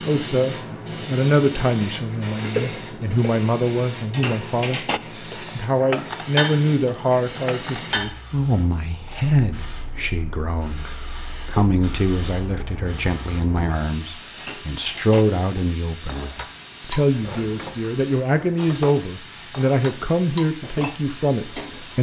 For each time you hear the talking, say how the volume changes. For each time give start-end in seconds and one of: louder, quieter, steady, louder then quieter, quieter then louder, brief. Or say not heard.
0.0-21.9 steady.